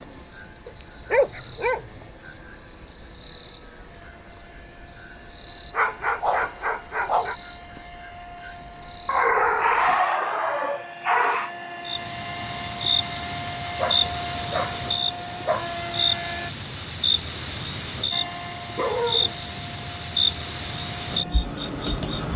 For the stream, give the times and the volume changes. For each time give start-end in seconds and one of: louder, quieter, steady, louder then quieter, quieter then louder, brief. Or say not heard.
not heard.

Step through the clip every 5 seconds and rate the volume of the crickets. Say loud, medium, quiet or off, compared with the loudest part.
quiet, quiet, loud, loud, loud.